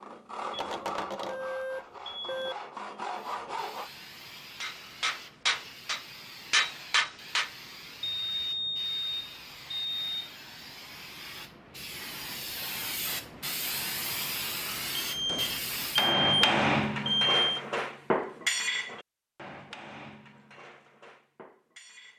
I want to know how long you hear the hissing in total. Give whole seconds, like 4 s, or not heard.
13 s.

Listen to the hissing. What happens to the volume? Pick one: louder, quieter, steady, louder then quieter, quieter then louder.
louder.